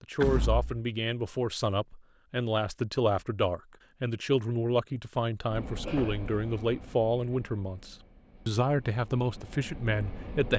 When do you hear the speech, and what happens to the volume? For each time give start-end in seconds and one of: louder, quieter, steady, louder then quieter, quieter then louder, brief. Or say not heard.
0.0-10.5 steady.